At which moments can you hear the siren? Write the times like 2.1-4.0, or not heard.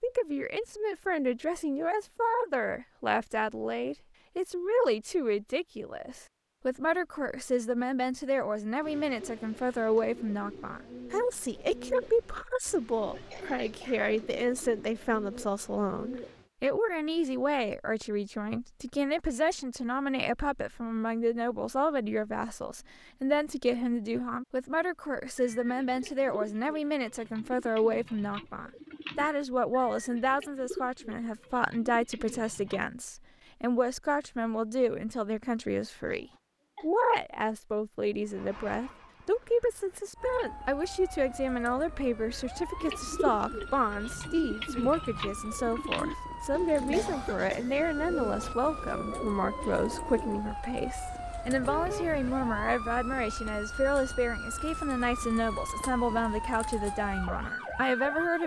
40.1-58.4.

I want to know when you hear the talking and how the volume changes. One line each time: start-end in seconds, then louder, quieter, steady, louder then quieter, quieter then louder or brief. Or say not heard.
0.0-58.4 steady.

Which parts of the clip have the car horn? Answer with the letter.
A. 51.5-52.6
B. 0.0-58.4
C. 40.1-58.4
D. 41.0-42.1
A.